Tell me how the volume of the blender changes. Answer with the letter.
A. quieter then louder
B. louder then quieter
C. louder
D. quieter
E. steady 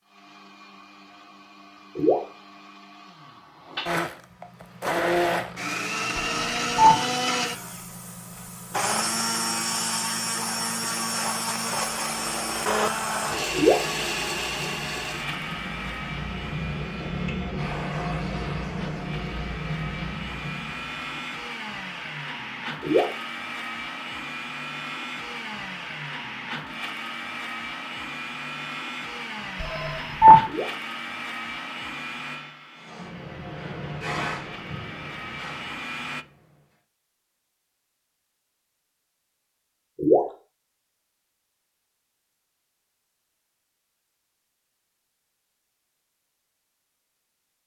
D.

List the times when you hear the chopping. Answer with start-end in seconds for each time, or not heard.
not heard.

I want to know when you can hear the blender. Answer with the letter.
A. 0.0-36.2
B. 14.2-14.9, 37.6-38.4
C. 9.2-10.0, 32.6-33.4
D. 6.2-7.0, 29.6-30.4
A.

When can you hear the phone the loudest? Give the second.
30 s.